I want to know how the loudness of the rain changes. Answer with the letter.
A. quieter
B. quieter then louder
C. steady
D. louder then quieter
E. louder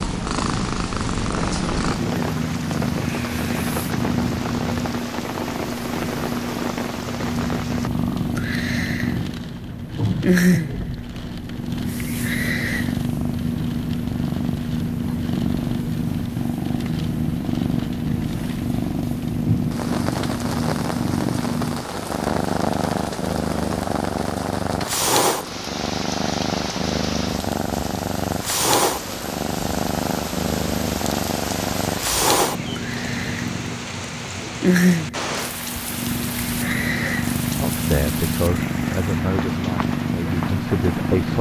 C.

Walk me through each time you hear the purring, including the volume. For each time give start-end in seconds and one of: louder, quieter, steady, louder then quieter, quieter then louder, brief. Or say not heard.
0.0-41.3 steady.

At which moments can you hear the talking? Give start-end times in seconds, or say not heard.
37.6-41.3.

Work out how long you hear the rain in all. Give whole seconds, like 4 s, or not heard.
41 s.